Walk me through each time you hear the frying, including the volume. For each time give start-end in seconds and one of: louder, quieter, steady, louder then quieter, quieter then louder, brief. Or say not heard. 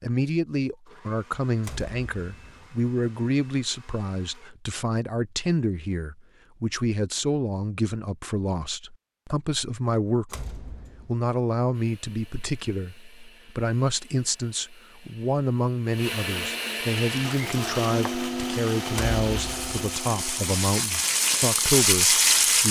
16.9-22.6 louder.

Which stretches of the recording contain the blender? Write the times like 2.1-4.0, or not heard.
0.0-4.5, 11.7-22.6.